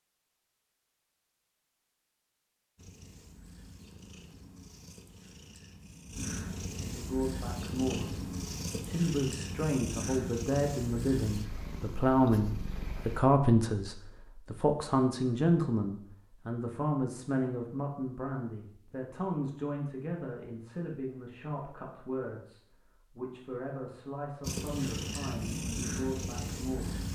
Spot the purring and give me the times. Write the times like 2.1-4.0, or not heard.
2.8-13.2, 24.4-27.1.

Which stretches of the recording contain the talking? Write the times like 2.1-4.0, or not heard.
6.9-27.1.